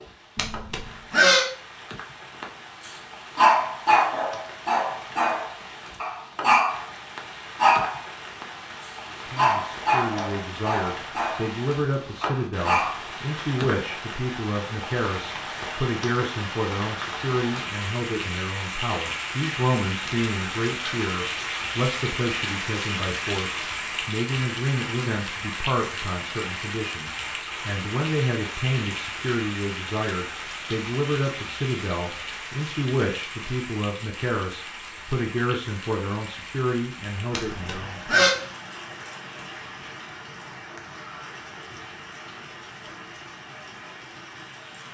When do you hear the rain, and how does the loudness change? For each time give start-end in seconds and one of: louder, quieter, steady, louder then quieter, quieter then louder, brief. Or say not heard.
0.0-44.8 louder then quieter.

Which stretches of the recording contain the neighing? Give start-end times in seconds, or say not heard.
0.3-1.4, 20.1-20.9, 37.3-38.4.